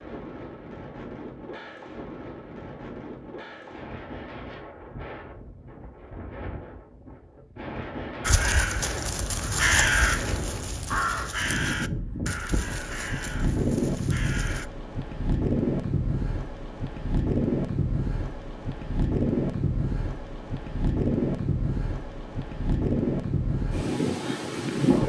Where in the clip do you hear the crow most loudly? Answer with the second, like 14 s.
10 s.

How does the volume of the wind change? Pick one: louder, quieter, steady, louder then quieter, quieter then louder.
louder.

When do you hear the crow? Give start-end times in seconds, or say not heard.
8.2-14.7.